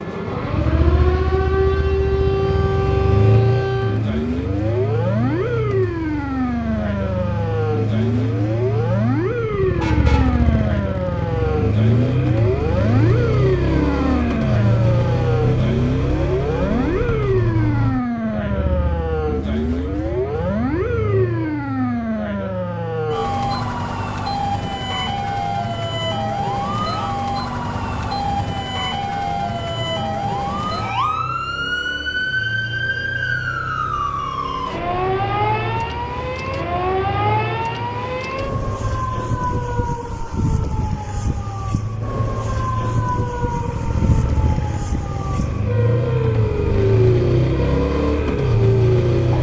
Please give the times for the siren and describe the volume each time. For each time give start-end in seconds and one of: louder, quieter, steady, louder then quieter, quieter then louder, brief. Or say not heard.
0.0-49.3 steady.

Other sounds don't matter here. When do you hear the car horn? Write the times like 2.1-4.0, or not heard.
9.8-10.4.